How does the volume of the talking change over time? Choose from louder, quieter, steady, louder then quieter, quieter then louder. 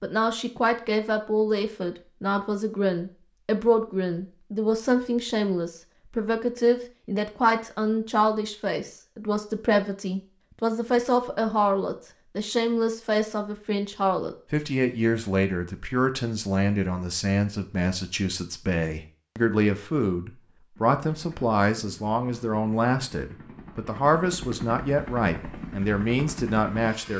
steady.